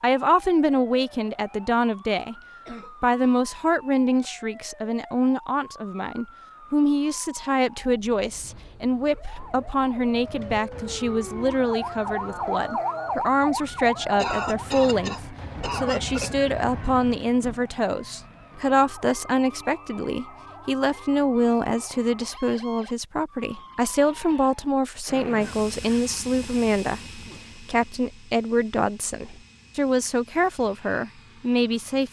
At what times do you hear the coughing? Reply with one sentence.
The coughing can be heard from 2.4 to 3.5 s, from 14.2 to 16.4 s and from 25.6 to 27.4 s.